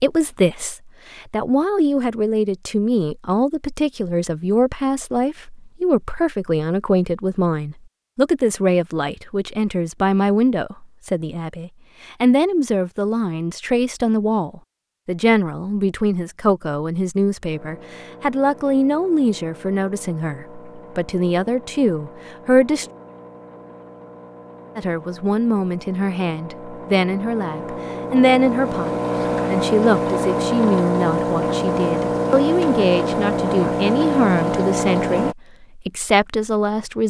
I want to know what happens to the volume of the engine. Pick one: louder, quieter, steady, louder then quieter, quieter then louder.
louder.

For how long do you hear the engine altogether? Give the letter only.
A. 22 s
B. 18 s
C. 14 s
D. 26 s
B.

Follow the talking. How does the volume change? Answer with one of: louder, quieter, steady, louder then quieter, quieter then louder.
steady.